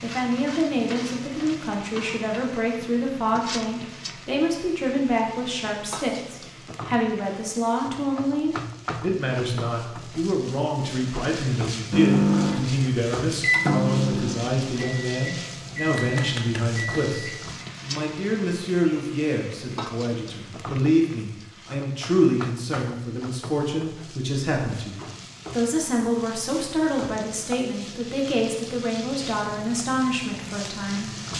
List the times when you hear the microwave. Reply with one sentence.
The microwave can be heard from 11.9 to 17.6 s.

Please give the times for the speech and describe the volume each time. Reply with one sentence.
The speech can be heard from 0.0 to 31.1 s, at a steady volume.